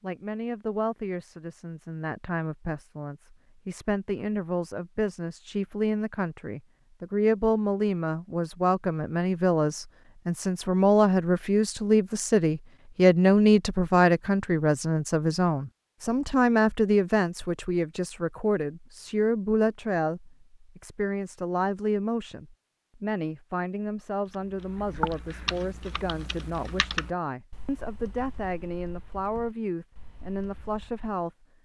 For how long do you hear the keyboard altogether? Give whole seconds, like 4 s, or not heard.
7 s.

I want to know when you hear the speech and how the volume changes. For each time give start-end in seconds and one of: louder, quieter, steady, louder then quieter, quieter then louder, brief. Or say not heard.
0.0-31.4 louder then quieter.